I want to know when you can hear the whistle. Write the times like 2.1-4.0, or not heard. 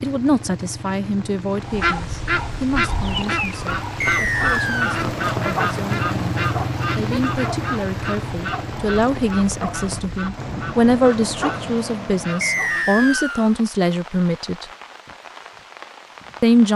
4.0-5.0, 12.4-13.5.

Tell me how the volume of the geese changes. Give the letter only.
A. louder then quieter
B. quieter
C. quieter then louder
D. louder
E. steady
B.